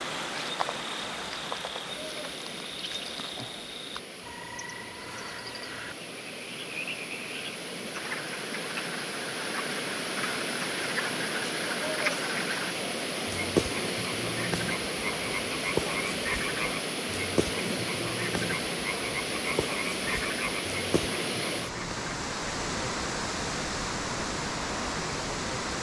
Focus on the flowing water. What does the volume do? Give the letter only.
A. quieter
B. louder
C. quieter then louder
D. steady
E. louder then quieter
B.